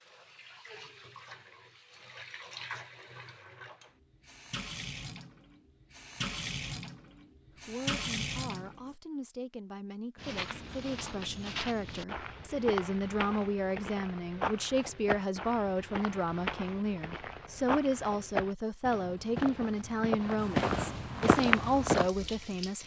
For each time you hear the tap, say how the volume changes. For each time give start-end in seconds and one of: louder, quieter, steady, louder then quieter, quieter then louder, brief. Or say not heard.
0.0-8.8 louder
21.4-22.8 brief.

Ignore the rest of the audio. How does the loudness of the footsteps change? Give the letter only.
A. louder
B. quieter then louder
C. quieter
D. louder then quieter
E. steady
A.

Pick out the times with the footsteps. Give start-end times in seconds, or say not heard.
10.2-22.1.